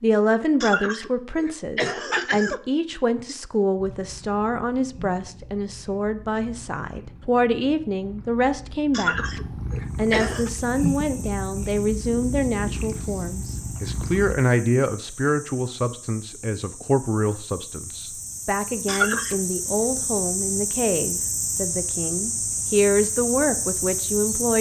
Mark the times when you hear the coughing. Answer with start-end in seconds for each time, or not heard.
0.6-2.6, 8.9-10.5, 18.9-19.4.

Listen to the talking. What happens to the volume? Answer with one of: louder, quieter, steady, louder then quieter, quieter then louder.
steady.